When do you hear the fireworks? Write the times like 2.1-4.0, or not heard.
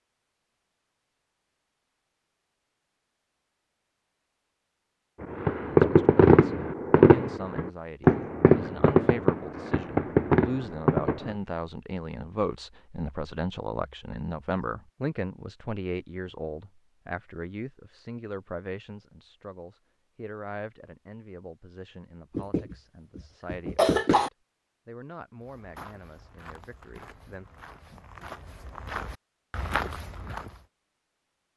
5.2-11.3.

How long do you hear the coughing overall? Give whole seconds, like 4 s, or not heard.
2 s.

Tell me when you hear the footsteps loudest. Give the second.
30 s.